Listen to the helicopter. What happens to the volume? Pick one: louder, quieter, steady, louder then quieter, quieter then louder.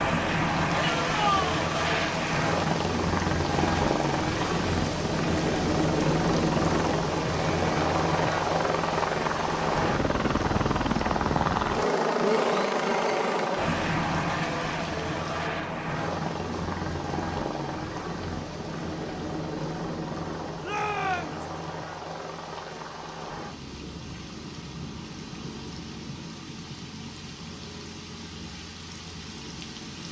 quieter.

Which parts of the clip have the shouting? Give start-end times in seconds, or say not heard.
0.8-1.6, 12.2-13.5, 20.6-21.4.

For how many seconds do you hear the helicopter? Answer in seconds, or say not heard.
30 s.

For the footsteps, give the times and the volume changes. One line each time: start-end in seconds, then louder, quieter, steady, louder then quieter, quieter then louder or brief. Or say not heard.
not heard.